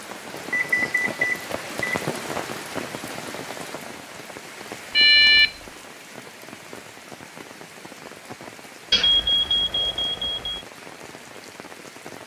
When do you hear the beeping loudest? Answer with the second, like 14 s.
5 s.